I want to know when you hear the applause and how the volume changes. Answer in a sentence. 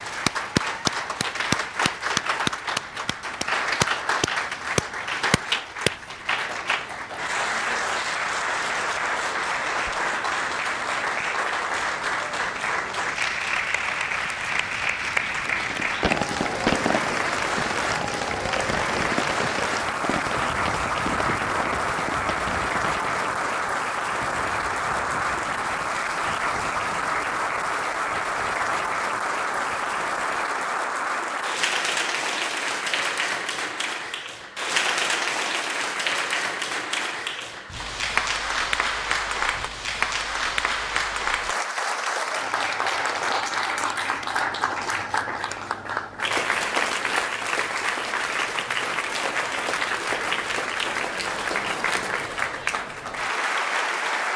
The applause can be heard from 0.0 to 54.3 s, at a steady volume.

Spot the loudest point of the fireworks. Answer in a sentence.
The loudest moment of the fireworks is at 17 seconds.